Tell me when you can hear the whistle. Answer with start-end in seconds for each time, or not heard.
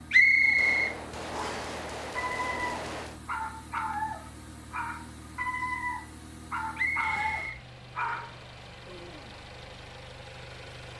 0.1-1.7, 6.8-8.3.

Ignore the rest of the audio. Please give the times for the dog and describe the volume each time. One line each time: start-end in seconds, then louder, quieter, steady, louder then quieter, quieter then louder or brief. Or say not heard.
2.1-9.3 steady.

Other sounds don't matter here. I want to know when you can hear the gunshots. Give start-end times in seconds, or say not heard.
0.4-3.2.